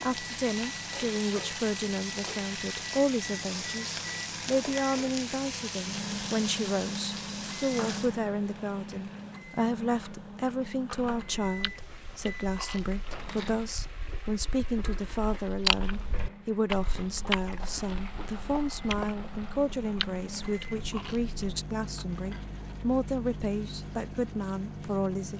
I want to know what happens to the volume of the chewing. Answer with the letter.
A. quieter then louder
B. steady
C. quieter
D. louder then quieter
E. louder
D.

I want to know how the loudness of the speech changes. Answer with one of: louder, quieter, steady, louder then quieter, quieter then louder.
steady.